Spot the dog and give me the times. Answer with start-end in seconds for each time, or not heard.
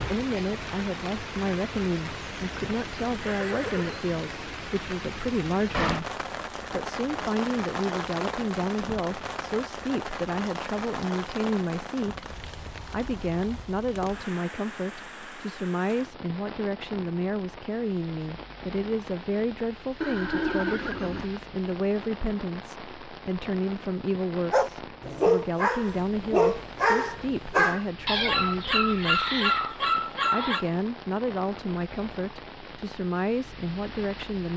24.5-30.6.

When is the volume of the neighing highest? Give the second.
21 s.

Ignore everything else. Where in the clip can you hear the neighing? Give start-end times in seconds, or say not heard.
3.2-4.1, 20.0-21.3.